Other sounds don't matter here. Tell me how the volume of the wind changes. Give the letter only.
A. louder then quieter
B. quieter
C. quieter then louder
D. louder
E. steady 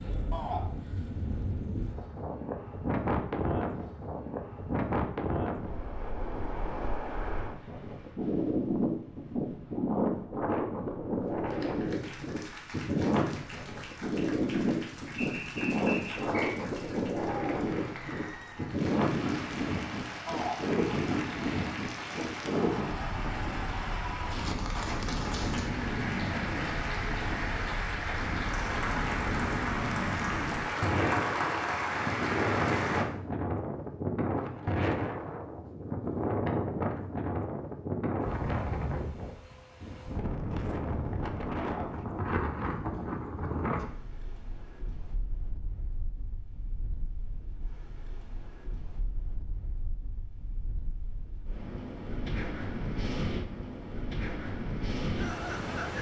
B.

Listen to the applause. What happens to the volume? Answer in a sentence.
The loudness of the applause goes up.